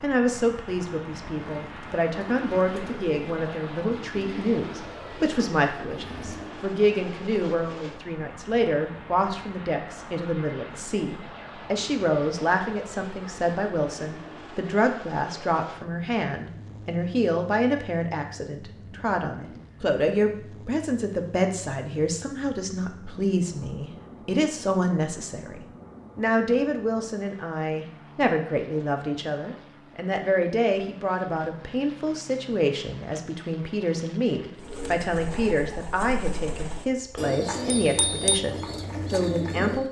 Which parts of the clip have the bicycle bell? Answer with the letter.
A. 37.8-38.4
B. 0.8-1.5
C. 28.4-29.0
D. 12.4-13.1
A.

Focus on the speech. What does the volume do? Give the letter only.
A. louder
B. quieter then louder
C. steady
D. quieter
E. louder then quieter
C.